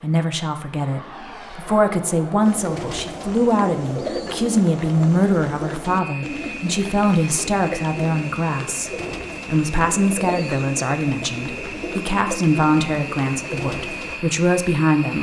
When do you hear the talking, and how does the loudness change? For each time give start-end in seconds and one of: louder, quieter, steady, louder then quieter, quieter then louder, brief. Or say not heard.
0.0-15.1 steady.